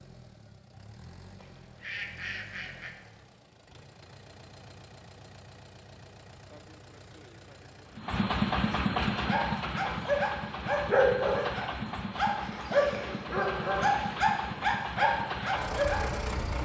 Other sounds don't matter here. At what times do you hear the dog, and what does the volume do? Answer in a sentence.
You can hear the dog from 9.1 to 16.1 s, at a steady volume.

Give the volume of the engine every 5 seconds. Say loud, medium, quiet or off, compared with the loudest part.
quiet, loud, loud, loud.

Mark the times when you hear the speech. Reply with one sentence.
You can't hear the speech here.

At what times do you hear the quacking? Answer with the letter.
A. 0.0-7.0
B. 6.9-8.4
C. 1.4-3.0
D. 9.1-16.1
C.